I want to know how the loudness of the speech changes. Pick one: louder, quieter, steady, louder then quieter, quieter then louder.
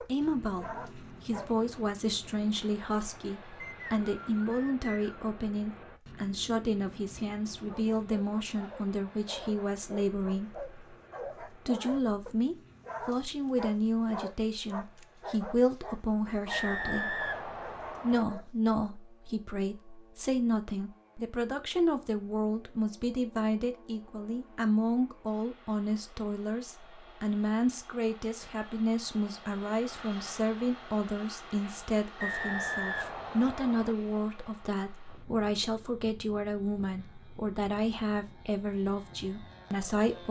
steady.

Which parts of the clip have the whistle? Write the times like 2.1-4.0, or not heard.
3.6-5.2, 16.5-18.2, 32.2-34.0.